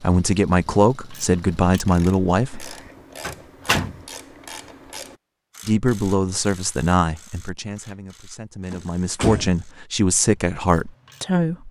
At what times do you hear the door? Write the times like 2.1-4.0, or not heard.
3.2-4.0, 8.7-9.7.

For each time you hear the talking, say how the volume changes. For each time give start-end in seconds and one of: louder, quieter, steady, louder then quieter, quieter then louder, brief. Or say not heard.
0.0-2.8 brief
5.7-11.6 quieter then louder.